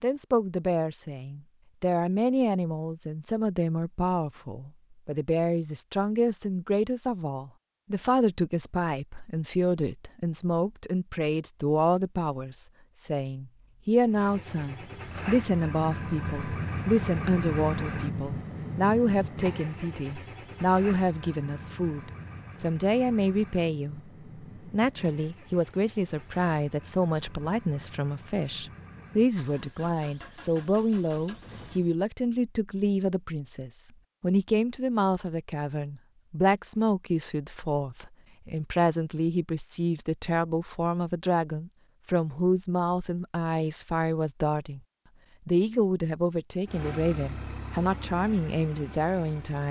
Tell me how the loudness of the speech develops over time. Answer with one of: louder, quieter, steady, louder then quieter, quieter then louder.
steady.